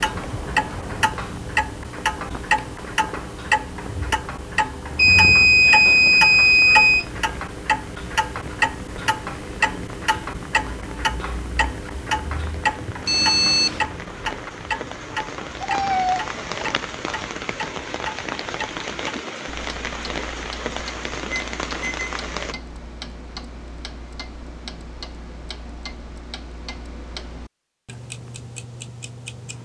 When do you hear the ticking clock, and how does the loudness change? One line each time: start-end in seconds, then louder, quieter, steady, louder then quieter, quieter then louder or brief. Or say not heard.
0.0-29.5 quieter.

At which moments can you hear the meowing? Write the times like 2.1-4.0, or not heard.
15.6-16.9.